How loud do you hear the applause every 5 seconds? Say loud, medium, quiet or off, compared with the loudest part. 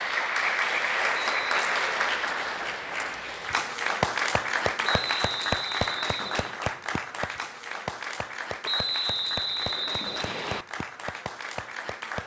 loud, medium, medium.